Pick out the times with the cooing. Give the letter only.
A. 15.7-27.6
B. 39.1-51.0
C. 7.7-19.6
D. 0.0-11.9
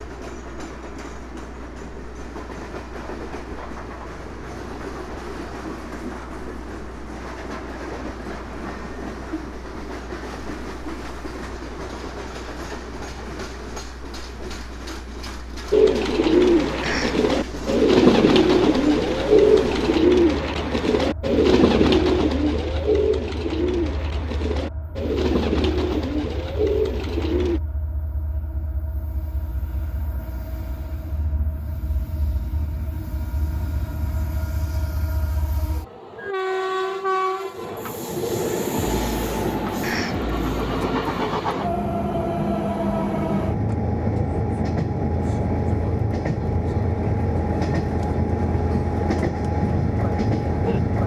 A.